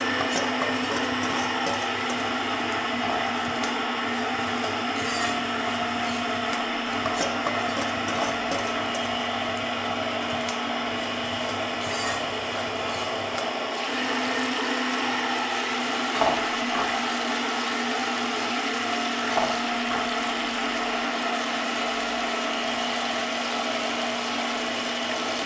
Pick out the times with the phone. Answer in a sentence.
The phone can't be heard in this clip.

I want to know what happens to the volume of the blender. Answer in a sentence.
The loudness of the blender stays about the same.